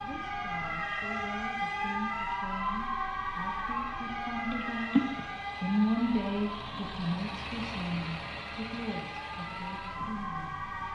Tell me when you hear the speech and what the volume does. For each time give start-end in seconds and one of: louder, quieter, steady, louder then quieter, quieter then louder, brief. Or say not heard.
0.0-10.8 louder then quieter.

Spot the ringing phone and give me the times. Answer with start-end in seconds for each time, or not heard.
4.5-5.2.